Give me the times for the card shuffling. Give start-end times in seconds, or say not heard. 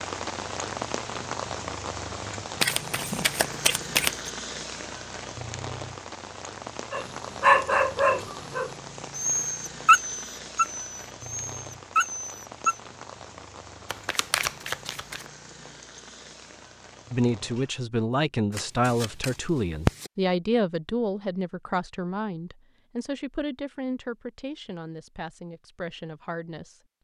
2.6-4.3, 13.9-15.3, 18.5-20.1.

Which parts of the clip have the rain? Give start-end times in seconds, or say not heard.
0.0-17.8.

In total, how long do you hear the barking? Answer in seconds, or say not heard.
6 s.